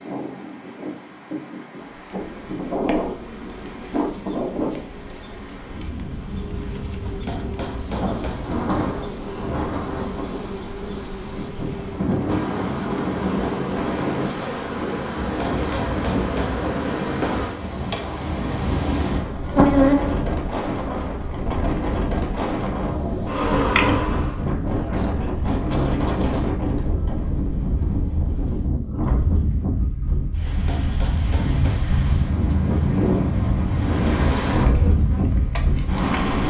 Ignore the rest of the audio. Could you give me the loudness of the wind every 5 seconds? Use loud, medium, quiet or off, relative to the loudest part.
medium, medium, loud, loud, loud, loud, loud, loud.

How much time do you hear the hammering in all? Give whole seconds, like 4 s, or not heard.
5 s.